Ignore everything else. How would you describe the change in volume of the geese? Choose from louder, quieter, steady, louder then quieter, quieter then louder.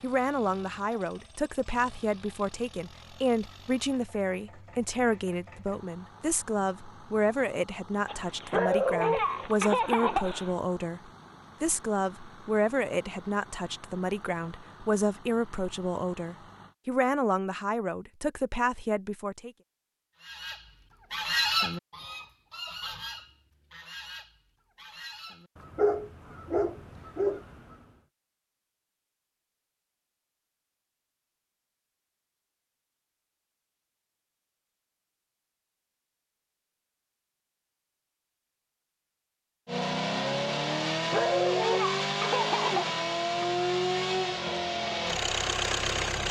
quieter.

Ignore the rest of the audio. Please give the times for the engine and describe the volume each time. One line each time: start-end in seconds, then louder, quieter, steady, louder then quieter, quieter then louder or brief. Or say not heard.
0.0-16.8 steady
39.6-46.2 steady.